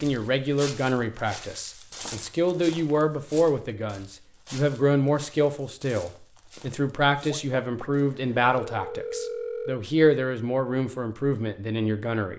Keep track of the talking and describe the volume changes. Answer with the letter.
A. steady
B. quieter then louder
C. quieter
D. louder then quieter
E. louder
A.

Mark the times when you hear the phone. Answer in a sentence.
The phone can be heard from 7.3 to 9.8 s.